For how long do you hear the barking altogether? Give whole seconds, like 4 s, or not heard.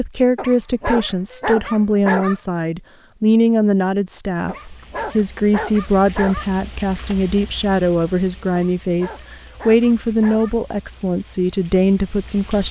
6 s.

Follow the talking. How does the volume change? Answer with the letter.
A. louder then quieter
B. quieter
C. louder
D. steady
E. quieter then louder
D.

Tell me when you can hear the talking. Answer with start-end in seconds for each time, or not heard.
0.0-12.6.